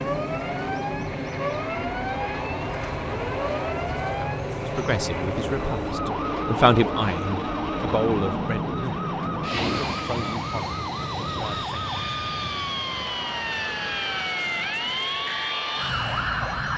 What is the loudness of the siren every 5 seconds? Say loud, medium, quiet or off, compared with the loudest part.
medium, medium, loud, loud.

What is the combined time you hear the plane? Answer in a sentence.
The plane can be heard for 17 seconds in total.